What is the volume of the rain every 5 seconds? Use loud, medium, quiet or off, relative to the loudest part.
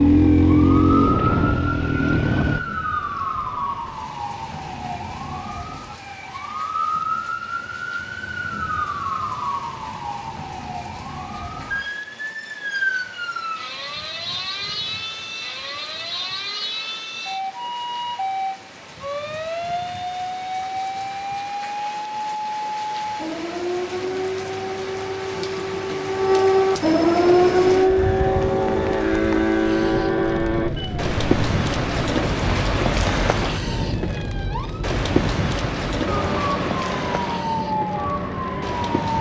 quiet, quiet, quiet, quiet, quiet, medium, loud, loud.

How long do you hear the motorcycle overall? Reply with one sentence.
The motorcycle can be heard for 6 seconds in total.